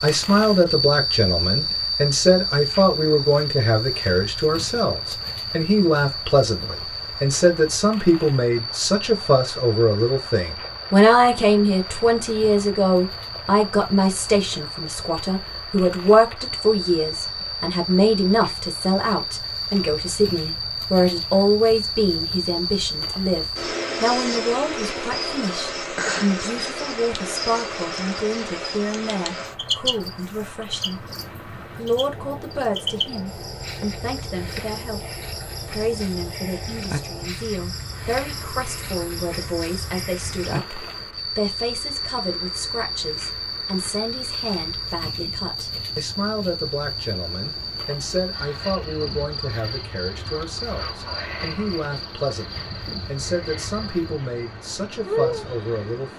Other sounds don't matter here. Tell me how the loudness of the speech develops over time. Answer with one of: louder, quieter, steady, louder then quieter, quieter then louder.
quieter.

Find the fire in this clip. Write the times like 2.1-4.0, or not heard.
not heard.